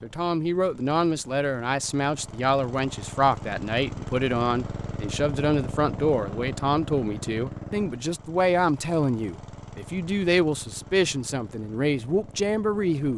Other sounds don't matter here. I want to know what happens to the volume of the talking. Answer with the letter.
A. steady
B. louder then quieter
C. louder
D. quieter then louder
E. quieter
A.